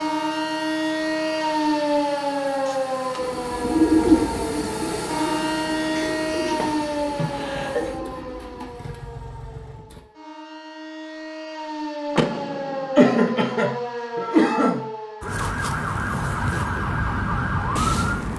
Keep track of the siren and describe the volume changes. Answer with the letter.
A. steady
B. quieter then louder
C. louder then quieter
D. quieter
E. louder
B.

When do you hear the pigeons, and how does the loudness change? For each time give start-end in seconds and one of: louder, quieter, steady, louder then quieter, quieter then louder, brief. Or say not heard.
3.1-8.7 quieter.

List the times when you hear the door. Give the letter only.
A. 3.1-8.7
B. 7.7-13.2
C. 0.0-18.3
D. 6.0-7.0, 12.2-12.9
D.